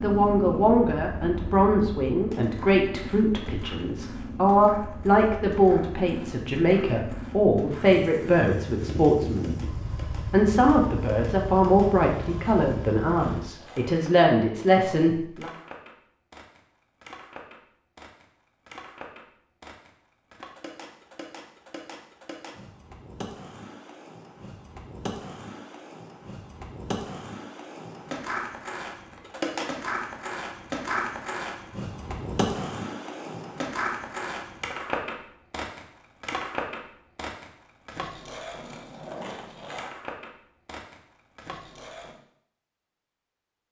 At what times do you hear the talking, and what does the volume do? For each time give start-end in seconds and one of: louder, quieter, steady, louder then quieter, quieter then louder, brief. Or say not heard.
0.0-15.5 steady.